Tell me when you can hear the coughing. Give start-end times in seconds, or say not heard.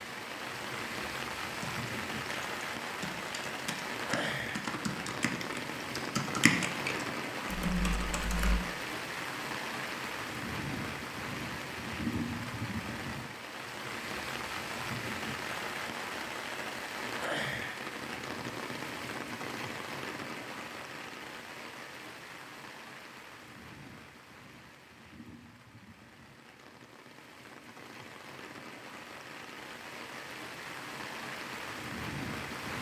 not heard.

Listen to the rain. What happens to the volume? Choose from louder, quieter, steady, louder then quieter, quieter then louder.
quieter.